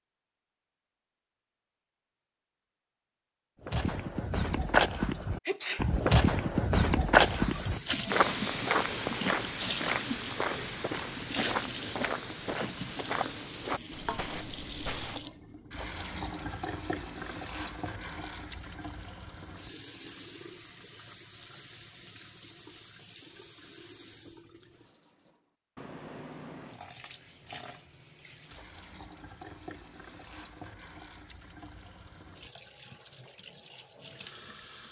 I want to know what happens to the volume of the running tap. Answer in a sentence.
The volume of the running tap goes down.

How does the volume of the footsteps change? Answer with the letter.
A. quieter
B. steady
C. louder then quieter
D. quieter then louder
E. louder
A.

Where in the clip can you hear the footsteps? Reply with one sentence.
You can hear the footsteps from 3.6 to 15.3 s.